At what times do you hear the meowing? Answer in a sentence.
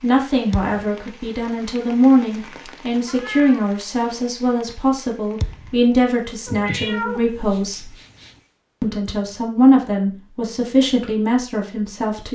The meowing can be heard from 3.0 to 4.3 s and from 6.5 to 8.3 s.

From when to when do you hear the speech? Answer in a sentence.
The speech can be heard from 0.0 to 7.9 s and from 8.8 to 12.3 s.